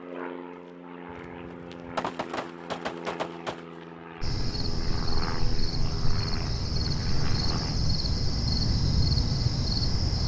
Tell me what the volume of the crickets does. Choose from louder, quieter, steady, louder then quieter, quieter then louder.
louder.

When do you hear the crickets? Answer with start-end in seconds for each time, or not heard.
4.2-10.2.